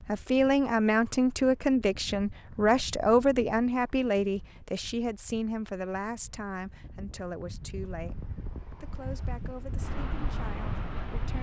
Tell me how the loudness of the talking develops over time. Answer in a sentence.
The volume of the talking goes down.